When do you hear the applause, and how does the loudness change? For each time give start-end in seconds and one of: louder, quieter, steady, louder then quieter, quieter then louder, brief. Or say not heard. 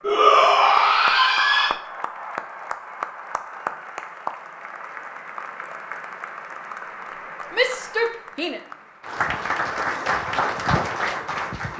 0.0-11.7 quieter then louder.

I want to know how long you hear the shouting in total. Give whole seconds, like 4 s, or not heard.
3 s.